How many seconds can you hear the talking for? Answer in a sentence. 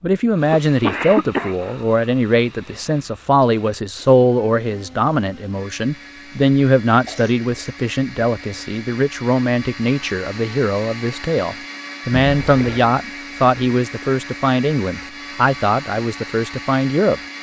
The talking can be heard for 17 seconds in total.